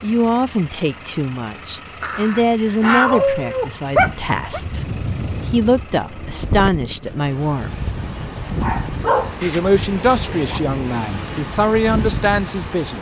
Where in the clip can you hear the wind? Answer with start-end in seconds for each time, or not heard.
4.0-12.9.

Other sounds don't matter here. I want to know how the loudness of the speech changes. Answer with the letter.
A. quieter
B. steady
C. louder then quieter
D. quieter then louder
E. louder
B.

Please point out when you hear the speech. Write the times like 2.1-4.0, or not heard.
0.0-7.8, 9.4-12.9.